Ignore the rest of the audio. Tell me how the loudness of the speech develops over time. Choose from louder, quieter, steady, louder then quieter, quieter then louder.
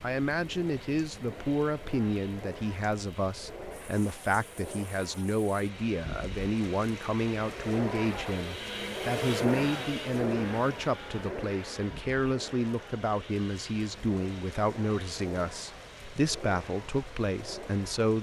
steady.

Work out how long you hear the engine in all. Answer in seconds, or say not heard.
18 s.